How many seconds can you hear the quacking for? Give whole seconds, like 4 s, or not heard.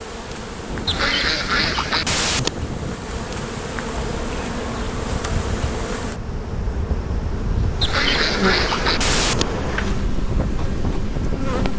3 s.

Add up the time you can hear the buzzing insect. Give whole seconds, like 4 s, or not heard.
12 s.